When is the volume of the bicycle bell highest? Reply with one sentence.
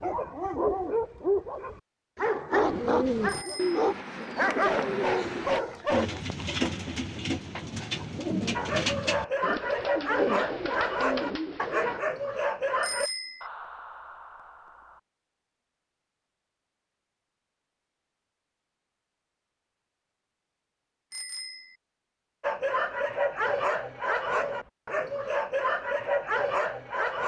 The loudest moment of the bicycle bell is at 13 seconds.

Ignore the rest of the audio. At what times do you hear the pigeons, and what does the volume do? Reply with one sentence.
You can hear the pigeons from 2.5 to 12.0 s, at a steady volume.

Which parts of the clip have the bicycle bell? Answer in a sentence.
You can hear the bicycle bell from 3.2 to 3.8 s, from 12.8 to 13.5 s and from 21.1 to 21.8 s.